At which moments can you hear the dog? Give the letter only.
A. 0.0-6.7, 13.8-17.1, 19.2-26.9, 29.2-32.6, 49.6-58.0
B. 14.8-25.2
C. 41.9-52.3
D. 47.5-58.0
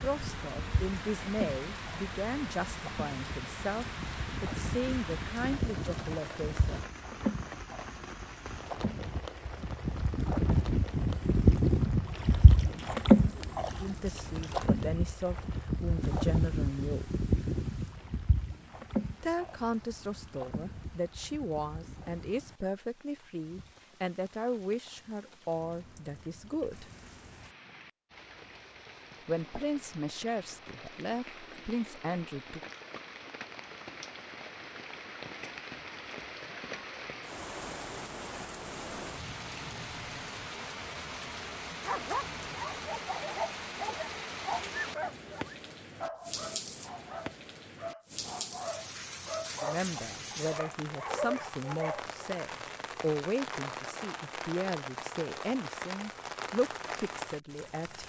C.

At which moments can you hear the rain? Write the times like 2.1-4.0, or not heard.
0.0-58.0.